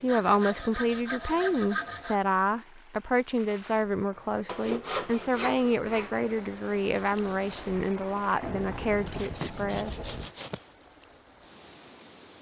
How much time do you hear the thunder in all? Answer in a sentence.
You can hear the thunder for 2 seconds altogether.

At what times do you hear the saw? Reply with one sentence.
You can hear the saw from 0.1 to 2.2 s, from 4.5 to 6.1 s and from 9.1 to 10.7 s.